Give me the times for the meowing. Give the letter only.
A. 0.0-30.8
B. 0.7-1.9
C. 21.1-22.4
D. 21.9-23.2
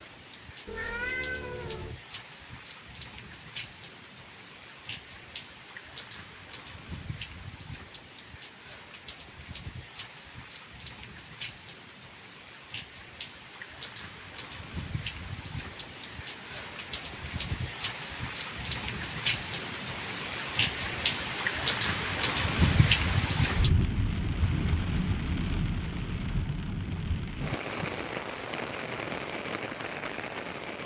B.